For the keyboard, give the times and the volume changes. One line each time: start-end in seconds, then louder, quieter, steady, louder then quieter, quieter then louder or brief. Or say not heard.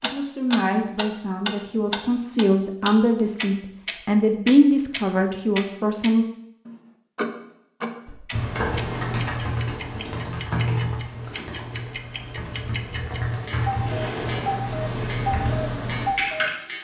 8.1-16.5 quieter then louder.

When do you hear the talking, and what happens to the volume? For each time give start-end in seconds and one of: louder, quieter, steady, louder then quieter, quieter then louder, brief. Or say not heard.
0.0-6.2 louder then quieter.